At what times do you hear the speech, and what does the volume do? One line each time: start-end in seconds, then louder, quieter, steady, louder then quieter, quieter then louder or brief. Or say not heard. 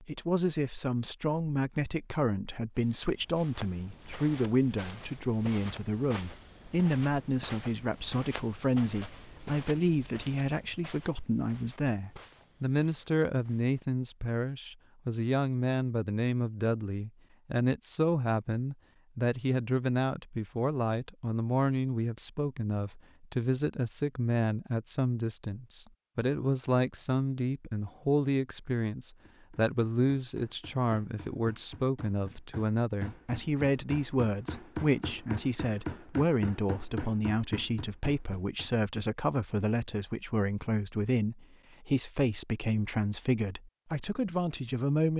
0.0-45.1 steady.